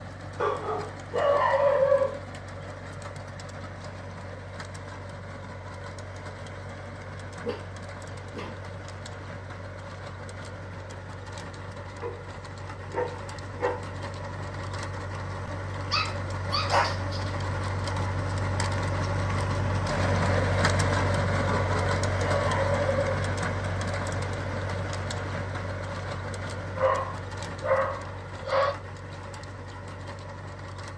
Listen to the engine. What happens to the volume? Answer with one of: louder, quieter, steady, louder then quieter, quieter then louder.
louder then quieter.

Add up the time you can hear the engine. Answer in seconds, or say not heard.
31 s.